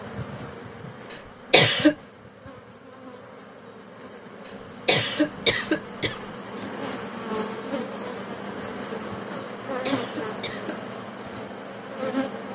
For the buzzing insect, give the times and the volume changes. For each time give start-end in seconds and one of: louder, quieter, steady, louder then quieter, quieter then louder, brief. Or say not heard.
0.0-12.5 louder.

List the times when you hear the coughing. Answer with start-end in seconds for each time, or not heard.
1.1-1.9, 4.5-6.3, 9.8-10.8.